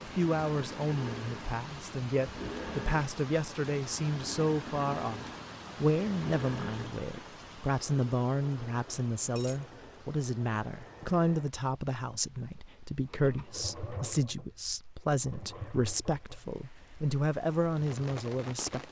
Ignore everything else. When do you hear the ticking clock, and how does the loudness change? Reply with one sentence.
The ticking clock can't be heard in this clip.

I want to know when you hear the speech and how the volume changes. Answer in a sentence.
You can hear the speech from 0.0 to 18.8 s, at a steady volume.